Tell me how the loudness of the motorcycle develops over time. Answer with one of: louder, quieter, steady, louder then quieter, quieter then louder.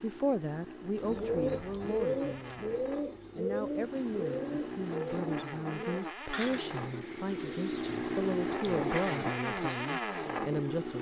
louder.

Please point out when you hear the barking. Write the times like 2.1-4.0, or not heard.
not heard.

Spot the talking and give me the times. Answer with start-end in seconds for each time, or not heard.
0.0-10.9.